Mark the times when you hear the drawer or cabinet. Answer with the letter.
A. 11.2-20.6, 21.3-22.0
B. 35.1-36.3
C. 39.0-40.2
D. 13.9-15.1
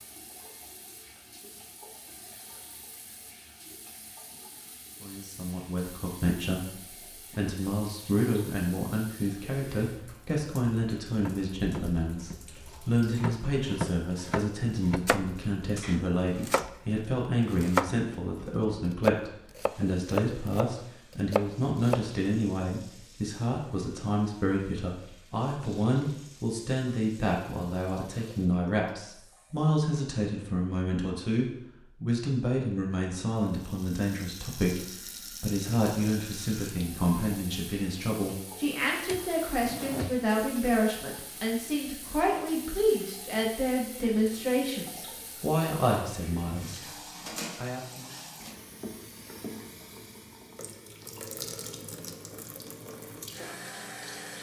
C.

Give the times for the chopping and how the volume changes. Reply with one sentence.
You can hear the chopping from 11.2 to 20.6 s, getting louder; and briefly from 21.3 to 22.0 s.